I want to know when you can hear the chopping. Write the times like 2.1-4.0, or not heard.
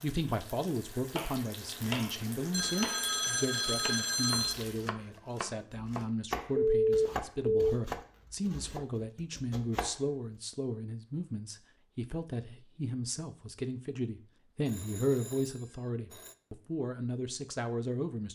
1.1-10.1.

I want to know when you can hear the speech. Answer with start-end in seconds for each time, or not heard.
0.0-18.3.